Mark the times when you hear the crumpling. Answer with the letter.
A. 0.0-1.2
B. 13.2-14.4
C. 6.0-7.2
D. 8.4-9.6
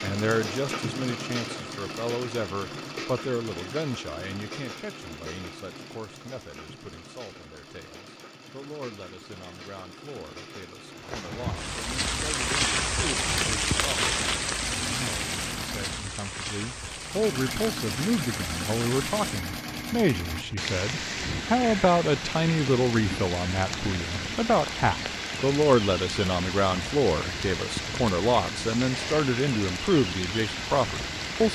B.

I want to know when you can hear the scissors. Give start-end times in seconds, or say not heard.
not heard.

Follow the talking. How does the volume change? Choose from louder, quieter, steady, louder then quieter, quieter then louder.
quieter then louder.